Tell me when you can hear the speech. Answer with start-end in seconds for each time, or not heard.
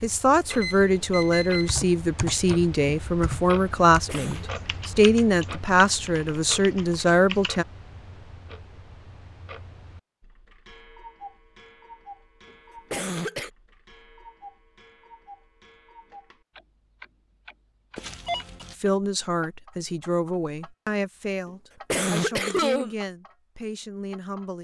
0.0-7.7, 18.8-24.5.